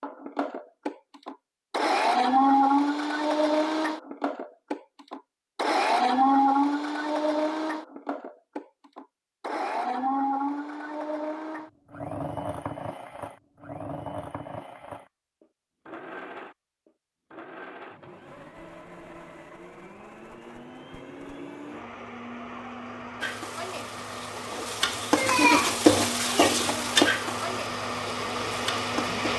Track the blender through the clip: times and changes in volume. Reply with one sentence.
You can hear the blender from 0.0 to 29.3 s, getting quieter then louder.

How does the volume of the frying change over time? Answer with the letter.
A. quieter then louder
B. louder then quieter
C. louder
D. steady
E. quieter
B.